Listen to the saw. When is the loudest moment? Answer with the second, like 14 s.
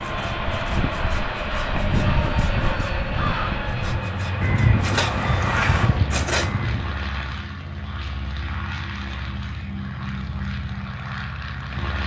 6 s.